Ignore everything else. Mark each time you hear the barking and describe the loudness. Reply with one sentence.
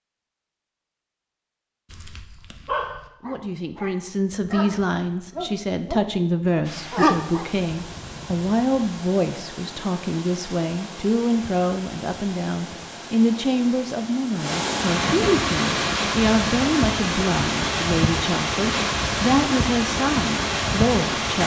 You can hear the barking from 1.9 to 7.5 s, getting quieter then louder.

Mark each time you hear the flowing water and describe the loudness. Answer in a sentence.
You can hear the flowing water from 6.6 to 21.4 s, getting louder.